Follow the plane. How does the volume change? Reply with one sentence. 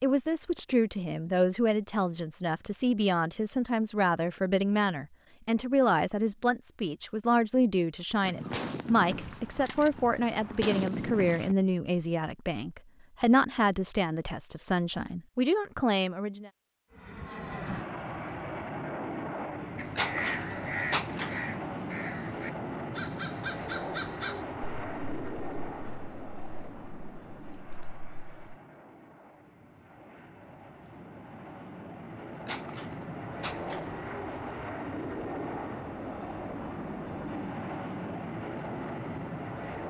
The loudness of the plane goes down, then up.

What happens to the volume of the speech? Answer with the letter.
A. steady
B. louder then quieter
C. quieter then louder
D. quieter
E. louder
A.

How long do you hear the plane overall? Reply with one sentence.
You can hear the plane for 23 seconds altogether.